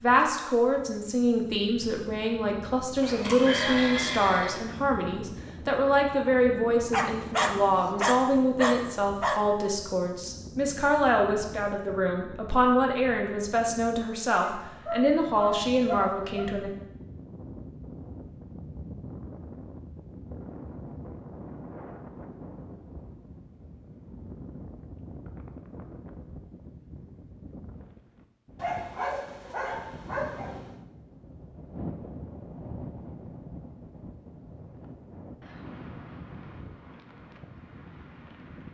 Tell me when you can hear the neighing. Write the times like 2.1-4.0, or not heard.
3.0-4.6.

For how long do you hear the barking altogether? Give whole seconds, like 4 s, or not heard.
7 s.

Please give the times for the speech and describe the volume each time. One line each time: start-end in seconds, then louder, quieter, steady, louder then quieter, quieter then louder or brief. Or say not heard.
0.0-16.7 steady.